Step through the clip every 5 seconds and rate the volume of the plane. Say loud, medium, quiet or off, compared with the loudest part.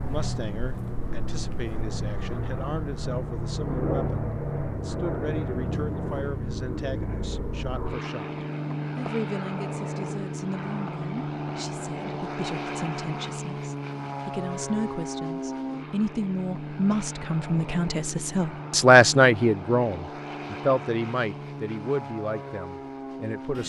loud, loud, loud, loud, medium.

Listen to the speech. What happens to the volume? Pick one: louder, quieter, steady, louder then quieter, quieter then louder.
louder.